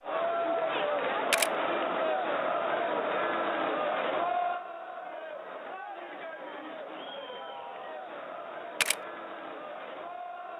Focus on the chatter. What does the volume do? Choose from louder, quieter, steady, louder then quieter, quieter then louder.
quieter.